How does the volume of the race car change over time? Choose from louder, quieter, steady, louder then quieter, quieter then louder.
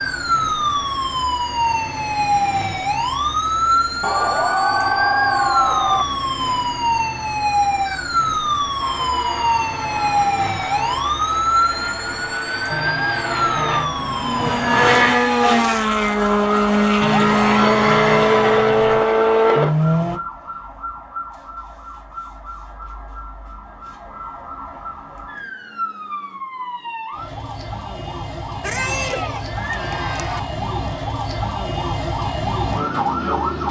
louder.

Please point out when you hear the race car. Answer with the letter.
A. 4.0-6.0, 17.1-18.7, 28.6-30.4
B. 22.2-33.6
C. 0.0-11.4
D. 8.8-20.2
D.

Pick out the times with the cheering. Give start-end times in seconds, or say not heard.
4.0-6.0, 17.1-18.7, 28.6-30.4.